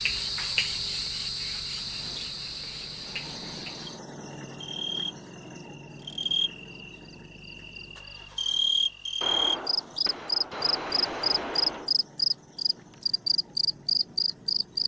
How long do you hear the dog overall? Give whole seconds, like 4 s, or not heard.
not heard.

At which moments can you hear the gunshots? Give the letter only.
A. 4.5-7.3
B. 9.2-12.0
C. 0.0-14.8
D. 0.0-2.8
B.